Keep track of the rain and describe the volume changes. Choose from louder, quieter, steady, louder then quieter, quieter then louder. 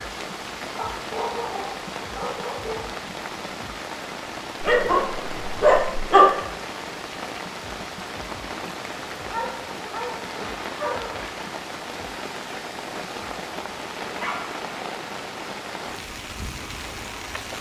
steady.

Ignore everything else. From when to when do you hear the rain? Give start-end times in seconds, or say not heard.
0.0-17.5.